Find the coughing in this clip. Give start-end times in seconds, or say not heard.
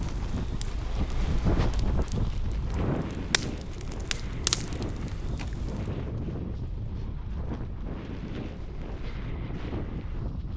not heard.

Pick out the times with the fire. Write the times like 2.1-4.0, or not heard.
0.0-6.0.